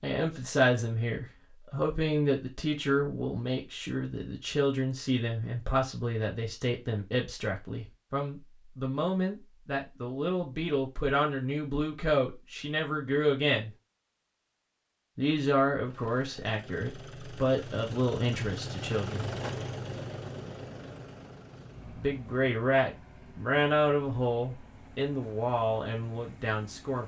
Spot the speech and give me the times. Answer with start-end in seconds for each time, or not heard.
0.0-13.7, 15.2-19.3, 21.9-27.0.